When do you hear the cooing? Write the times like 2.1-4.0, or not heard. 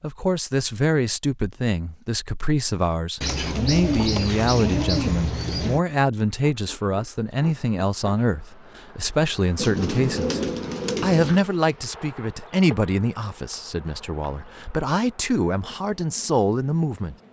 3.2-5.8, 9.6-11.4.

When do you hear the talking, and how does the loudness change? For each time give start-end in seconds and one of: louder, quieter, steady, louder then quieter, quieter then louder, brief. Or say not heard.
0.0-17.1 steady.